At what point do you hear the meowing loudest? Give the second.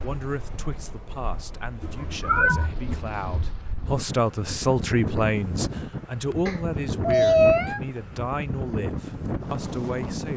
7 s.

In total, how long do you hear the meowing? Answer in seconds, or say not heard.
3 s.